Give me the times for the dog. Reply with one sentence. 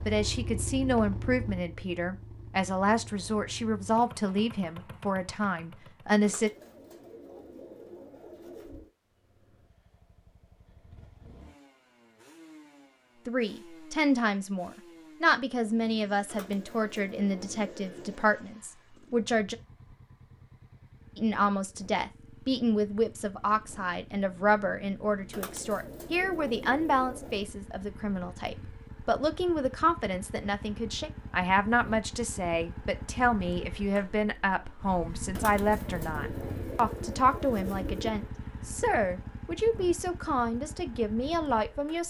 You can't hear the dog here.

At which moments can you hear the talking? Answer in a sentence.
The talking can be heard from 0.1 to 6.5 s, from 13.2 to 19.6 s and from 21.1 to 42.0 s.